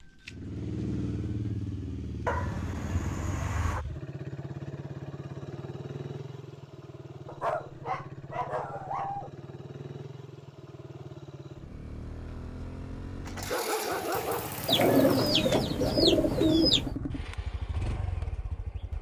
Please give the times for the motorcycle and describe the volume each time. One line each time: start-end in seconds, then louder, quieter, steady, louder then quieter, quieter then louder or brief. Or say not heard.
0.0-18.9 quieter then louder.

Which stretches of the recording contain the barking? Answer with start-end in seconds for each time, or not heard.
2.2-3.9, 7.2-9.3, 13.2-14.8.